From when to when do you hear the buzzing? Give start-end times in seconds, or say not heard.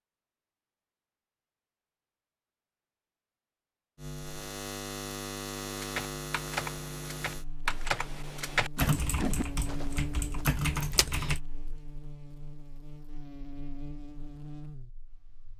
4.0-15.5.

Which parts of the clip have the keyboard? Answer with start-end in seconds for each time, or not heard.
5.6-11.4.